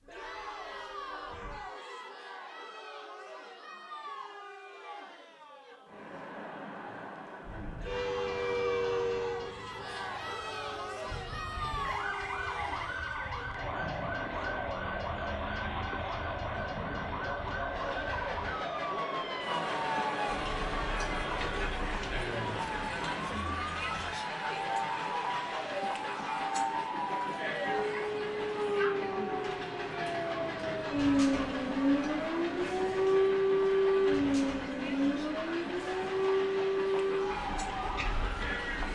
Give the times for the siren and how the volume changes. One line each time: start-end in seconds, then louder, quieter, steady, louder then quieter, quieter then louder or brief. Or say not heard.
11.0-38.7 louder.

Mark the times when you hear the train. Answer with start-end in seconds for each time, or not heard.
0.0-1.6, 7.4-38.9.